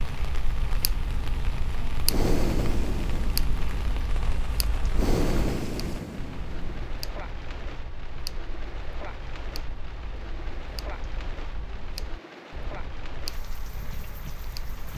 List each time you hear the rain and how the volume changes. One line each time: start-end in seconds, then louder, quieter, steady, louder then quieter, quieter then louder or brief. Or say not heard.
0.0-14.9 steady.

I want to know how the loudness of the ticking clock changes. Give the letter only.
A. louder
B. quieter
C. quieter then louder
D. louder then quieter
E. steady
B.